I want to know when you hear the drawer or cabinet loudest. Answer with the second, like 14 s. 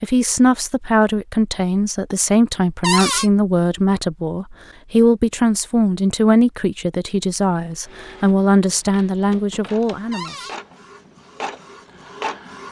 3 s.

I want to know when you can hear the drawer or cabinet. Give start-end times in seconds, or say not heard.
2.8-3.3, 10.1-10.6.